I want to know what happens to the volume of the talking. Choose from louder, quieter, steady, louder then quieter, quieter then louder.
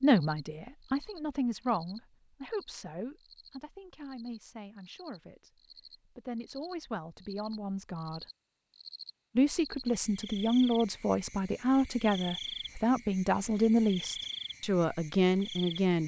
quieter then louder.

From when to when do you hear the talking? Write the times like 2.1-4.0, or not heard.
0.0-8.2, 9.3-16.0.